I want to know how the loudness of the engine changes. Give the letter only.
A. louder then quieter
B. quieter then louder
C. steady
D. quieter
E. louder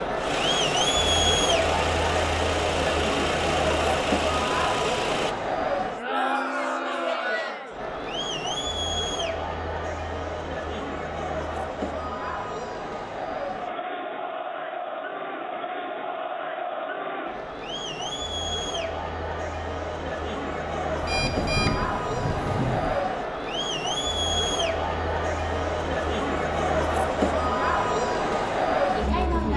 C.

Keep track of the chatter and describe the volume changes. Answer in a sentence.
The loudness of the chatter goes down, then up.